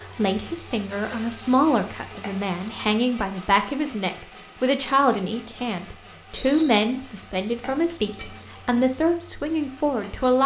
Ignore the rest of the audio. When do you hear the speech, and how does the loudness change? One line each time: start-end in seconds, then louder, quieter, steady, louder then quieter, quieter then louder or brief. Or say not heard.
0.1-10.4 steady.